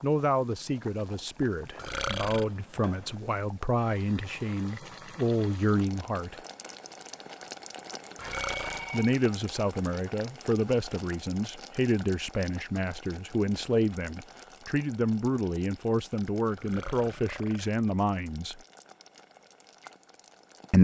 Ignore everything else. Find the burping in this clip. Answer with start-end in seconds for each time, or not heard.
1.8-2.5, 8.2-8.9, 16.6-17.8.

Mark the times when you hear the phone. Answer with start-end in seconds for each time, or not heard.
8.2-9.2.